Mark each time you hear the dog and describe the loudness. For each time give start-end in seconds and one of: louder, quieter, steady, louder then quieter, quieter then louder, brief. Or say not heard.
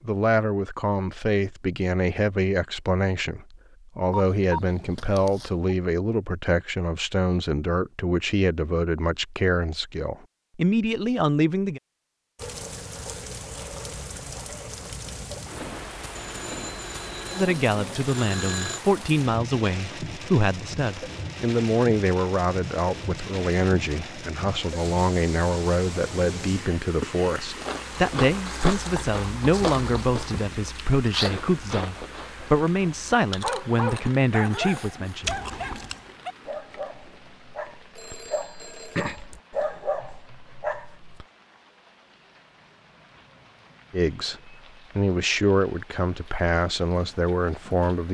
33.4-41.2 quieter then louder.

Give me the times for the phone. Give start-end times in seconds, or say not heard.
4.1-5.7, 16.1-18.8, 38.0-39.2.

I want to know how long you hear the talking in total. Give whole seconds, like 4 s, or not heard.
34 s.